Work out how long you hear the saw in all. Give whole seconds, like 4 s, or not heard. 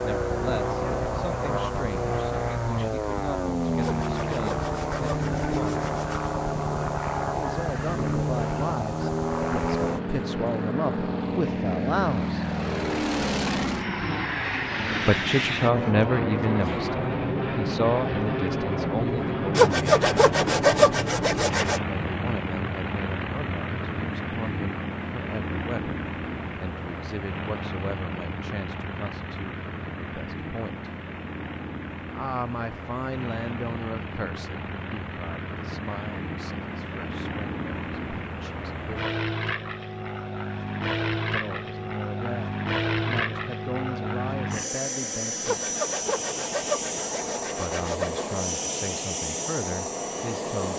8 s.